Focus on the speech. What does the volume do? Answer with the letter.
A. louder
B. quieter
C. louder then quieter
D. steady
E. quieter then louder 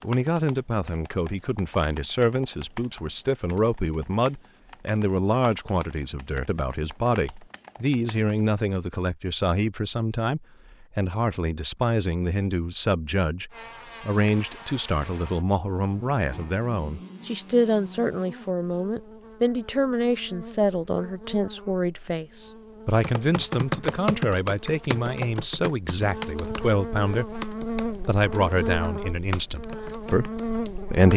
D.